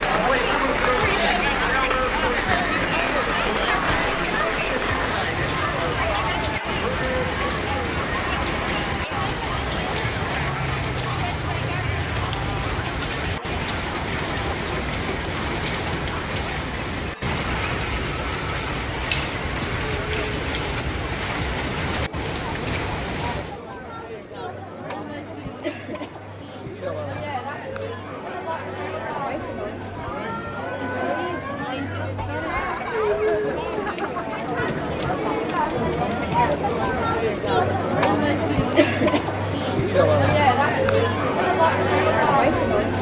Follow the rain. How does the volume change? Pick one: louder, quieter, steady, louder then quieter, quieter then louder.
steady.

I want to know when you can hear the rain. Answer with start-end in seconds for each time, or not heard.
0.0-23.6.